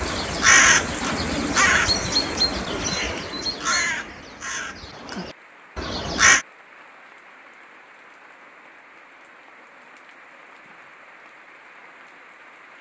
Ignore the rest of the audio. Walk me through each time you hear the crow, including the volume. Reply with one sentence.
You can hear the crow from 0.0 to 6.5 s, getting quieter.